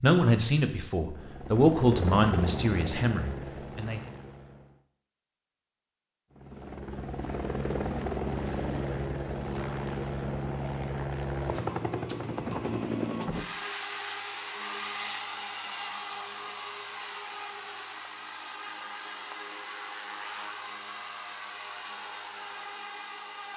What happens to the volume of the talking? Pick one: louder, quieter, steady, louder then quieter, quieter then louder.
louder then quieter.